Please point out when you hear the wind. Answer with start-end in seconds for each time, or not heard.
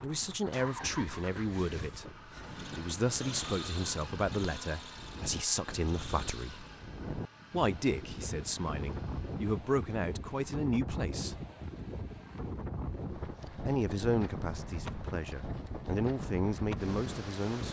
0.0-17.6.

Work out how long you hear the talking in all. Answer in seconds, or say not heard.
14 s.